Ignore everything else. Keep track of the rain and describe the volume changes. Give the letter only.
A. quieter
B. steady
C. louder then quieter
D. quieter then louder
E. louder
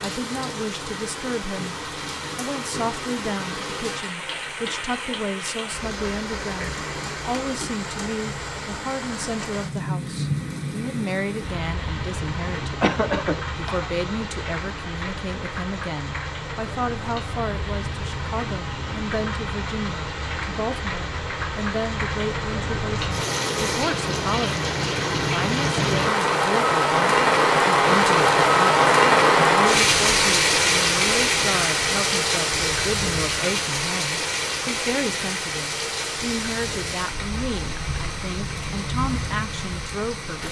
C.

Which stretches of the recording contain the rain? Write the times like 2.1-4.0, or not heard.
0.0-40.4.